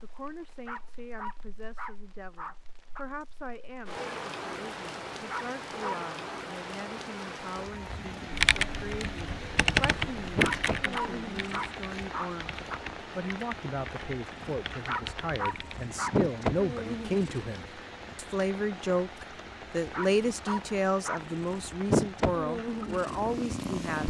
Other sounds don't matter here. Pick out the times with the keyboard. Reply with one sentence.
The keyboard can be heard from 8.3 to 15.8 s.